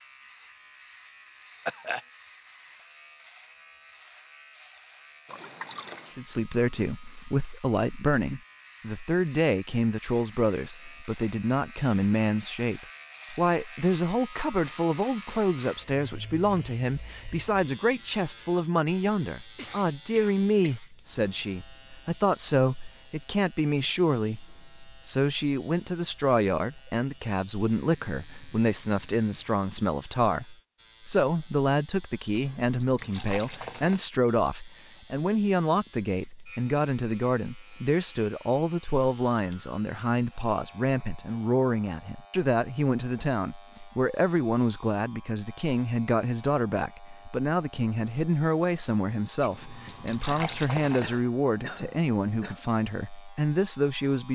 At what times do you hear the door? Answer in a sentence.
The door can't be heard in this clip.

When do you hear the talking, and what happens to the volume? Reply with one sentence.
The talking can be heard from 6.2 to 54.3 s, at a steady volume.